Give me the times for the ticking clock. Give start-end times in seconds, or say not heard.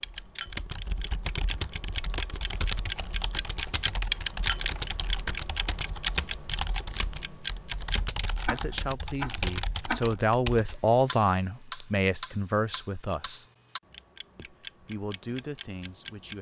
0.0-16.3.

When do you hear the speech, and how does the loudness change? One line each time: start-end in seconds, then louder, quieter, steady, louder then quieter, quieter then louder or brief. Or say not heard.
8.5-13.4 louder then quieter
14.3-16.3 brief.